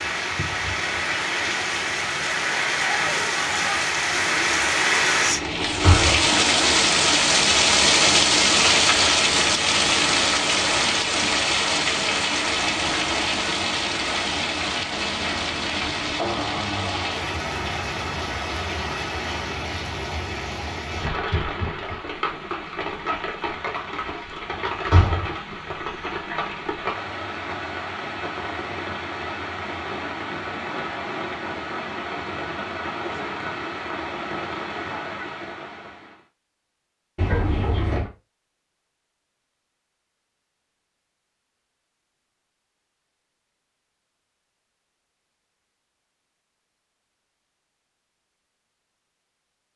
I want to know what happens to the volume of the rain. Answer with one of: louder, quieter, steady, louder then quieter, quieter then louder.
quieter.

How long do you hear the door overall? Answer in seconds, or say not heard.
2 s.